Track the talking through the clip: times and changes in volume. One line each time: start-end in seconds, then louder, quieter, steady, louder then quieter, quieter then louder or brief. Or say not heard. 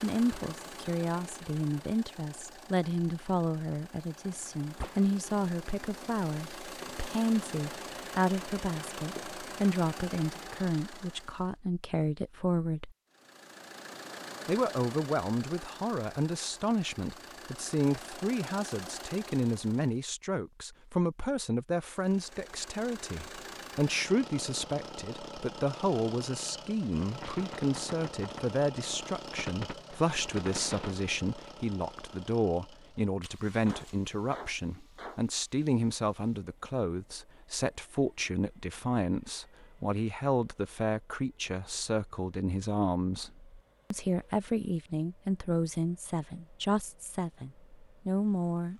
0.0-12.9 steady
14.4-48.7 steady.